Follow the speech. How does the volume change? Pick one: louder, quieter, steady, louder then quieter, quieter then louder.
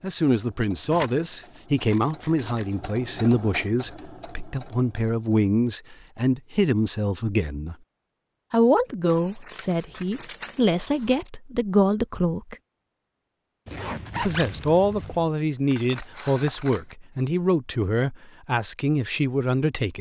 steady.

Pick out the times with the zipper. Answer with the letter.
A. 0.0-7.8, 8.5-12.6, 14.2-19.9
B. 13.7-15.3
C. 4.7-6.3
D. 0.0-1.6
B.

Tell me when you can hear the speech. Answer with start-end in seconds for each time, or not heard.
0.0-7.8, 8.5-12.6, 14.2-19.9.